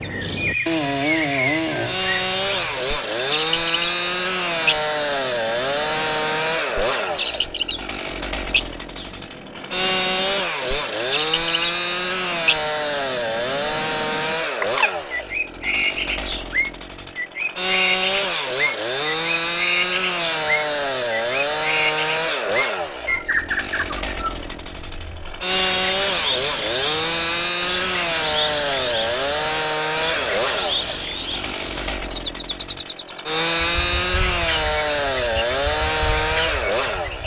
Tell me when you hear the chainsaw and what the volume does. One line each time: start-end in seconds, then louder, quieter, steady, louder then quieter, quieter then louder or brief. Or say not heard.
0.0-37.2 steady.